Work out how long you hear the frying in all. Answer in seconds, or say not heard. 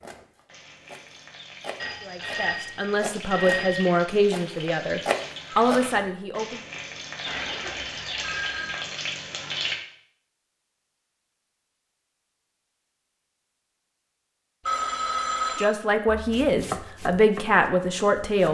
10 s.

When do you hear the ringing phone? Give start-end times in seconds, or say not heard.
1.8-4.0, 7.2-8.8, 14.7-15.8.